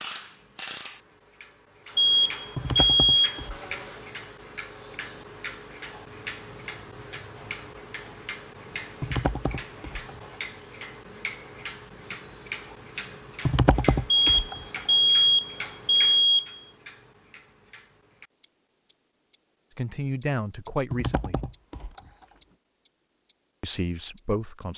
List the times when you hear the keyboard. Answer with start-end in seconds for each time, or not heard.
2.5-3.9, 9.0-10.2, 13.4-14.8, 20.9-22.2.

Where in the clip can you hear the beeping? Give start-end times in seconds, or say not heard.
1.9-3.4, 14.1-16.6.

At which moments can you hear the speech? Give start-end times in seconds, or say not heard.
19.8-21.4, 23.6-24.7.